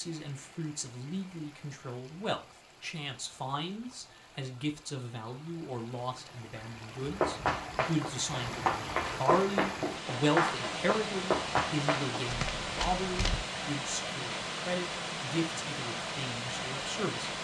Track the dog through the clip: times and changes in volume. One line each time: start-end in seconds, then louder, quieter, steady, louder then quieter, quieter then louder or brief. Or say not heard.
not heard.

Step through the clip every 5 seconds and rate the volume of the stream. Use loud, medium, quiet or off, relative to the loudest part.
quiet, medium, loud, loud.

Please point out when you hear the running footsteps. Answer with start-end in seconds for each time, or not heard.
7.0-13.4.